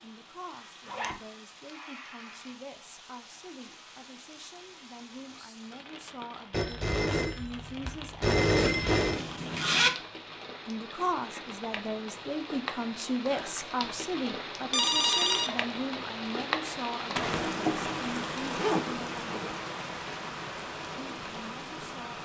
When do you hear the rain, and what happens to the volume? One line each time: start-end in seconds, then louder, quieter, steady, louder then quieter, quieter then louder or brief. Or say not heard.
0.0-22.2 louder.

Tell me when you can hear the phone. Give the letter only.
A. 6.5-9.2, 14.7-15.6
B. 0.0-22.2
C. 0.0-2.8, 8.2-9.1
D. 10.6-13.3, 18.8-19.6
A.